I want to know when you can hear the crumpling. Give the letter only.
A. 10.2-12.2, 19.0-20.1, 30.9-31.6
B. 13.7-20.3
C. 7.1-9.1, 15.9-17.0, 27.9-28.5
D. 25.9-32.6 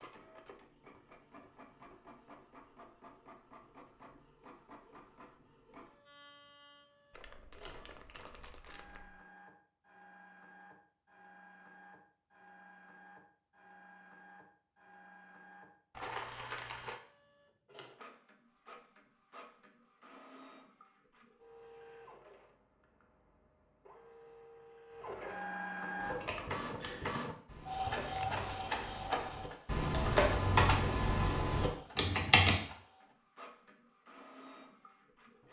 C.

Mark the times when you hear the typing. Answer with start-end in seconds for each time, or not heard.
25.9-32.6.